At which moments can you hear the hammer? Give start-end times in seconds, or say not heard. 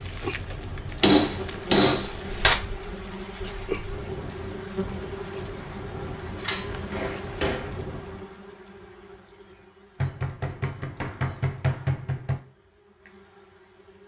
1.0-2.5, 6.3-7.8, 10.0-12.4.